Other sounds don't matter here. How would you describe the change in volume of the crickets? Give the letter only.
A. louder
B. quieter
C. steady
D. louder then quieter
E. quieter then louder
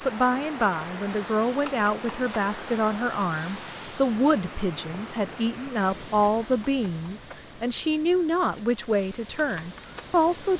E.